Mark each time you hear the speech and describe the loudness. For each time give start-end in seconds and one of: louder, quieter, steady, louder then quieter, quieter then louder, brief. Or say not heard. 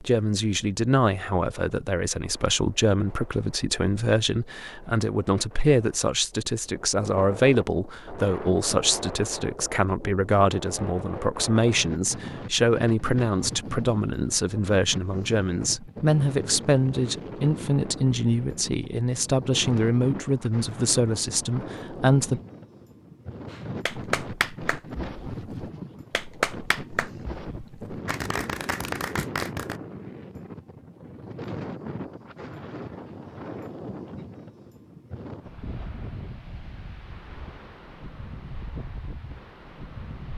0.0-22.4 steady.